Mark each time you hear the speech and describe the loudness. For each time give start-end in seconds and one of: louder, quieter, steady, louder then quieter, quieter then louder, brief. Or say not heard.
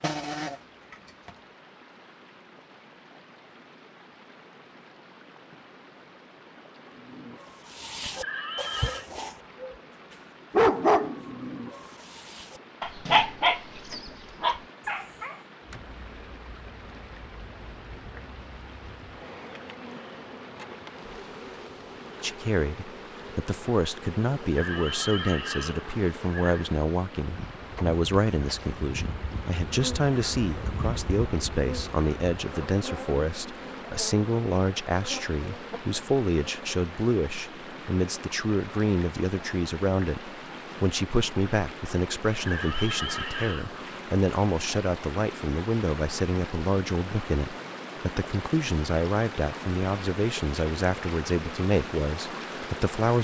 22.2-53.2 steady.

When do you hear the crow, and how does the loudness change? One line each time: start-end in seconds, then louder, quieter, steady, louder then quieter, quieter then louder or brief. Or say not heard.
not heard.